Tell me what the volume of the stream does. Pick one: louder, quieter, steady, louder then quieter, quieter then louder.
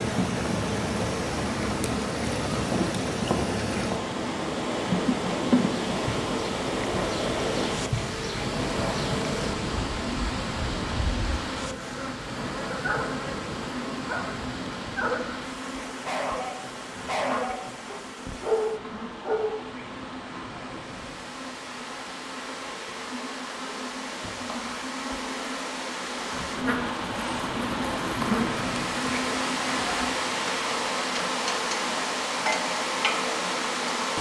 quieter then louder.